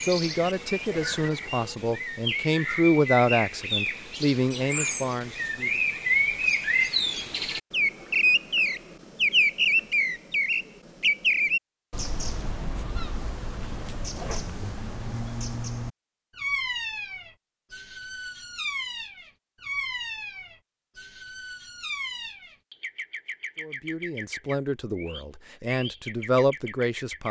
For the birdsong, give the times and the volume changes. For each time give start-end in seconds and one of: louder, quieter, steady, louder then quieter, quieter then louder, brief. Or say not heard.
0.0-27.2 louder then quieter.